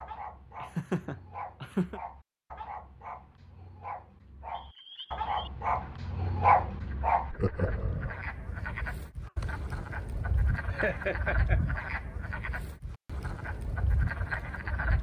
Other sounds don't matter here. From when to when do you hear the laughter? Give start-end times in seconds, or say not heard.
0.6-2.0, 7.3-8.2, 10.7-11.6.